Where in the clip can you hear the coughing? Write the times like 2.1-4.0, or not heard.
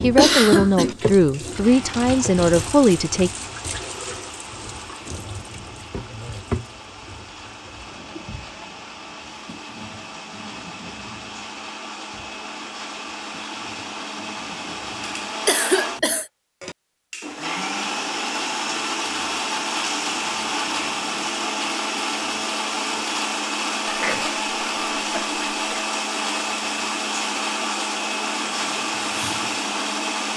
0.1-0.9, 15.4-16.2, 23.9-25.9.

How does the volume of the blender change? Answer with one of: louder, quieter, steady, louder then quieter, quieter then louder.
louder.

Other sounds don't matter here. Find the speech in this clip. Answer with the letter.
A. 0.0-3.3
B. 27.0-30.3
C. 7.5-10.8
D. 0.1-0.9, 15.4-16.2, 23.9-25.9
A.